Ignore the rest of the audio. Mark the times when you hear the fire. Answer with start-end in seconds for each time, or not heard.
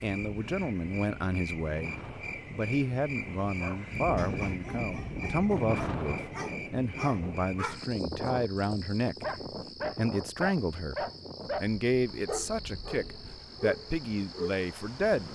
not heard.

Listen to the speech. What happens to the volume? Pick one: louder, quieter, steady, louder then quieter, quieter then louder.
steady.